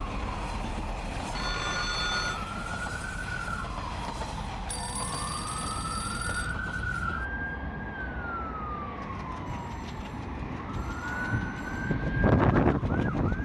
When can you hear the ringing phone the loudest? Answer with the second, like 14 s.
2 s.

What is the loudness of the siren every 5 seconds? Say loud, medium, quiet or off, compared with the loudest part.
medium, medium, loud.